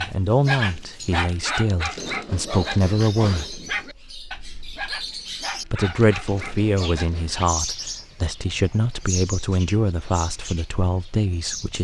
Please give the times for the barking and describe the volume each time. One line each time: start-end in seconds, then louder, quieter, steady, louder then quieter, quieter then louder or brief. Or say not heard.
0.0-7.4 quieter.